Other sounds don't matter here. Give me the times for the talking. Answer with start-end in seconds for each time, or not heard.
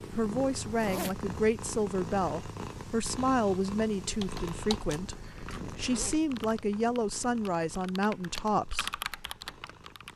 0.0-8.9.